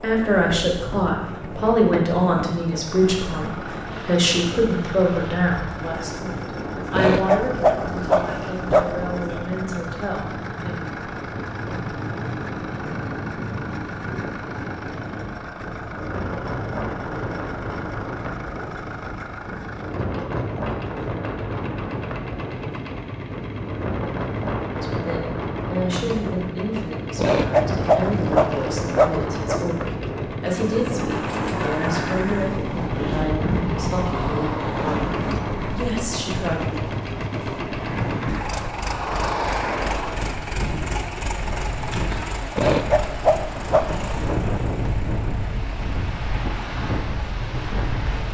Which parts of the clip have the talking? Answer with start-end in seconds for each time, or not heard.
0.0-10.8, 24.7-36.8.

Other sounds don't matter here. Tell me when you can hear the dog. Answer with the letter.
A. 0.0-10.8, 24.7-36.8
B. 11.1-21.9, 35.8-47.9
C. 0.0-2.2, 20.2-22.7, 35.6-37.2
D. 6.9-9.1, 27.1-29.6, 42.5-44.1
D.